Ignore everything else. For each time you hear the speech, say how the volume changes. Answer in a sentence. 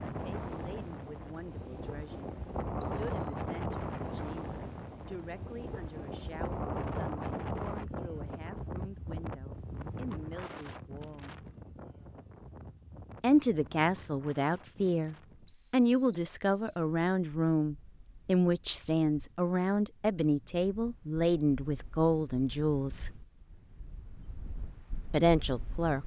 The speech can be heard from 0.0 to 11.4 s, at a steady volume; from 13.2 to 23.2 s, at a steady volume; and briefly from 25.1 to 26.0 s.